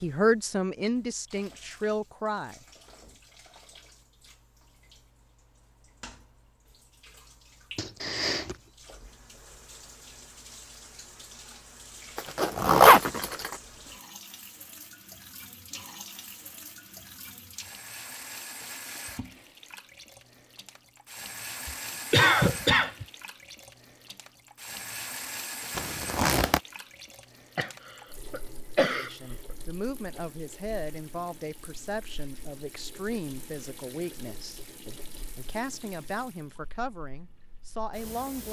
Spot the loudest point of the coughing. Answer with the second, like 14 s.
22 s.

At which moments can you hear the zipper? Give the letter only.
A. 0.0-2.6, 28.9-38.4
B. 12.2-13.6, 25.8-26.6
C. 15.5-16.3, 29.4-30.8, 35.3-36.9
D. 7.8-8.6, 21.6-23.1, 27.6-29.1
B.